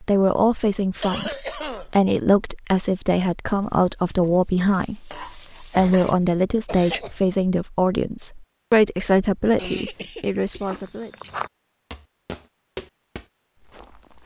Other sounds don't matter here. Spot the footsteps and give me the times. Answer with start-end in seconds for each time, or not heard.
10.6-14.2.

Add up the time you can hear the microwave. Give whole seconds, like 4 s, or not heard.
not heard.